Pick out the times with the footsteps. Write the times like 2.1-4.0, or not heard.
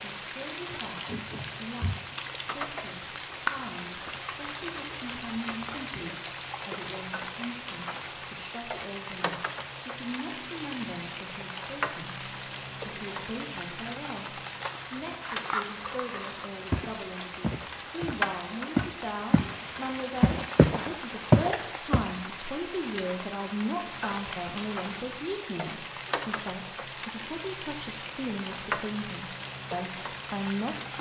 0.7-6.7, 16.7-19.6, 20.2-22.1.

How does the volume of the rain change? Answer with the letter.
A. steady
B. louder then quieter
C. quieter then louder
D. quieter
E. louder
A.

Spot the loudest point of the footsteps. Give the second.
21 s.